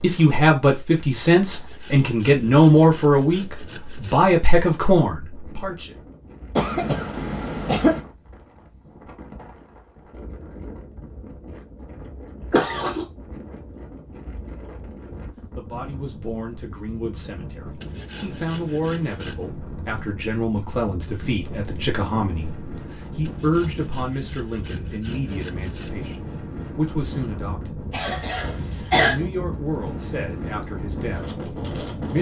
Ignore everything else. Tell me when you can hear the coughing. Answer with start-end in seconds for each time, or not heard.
6.5-8.0, 12.5-13.1, 27.9-29.1.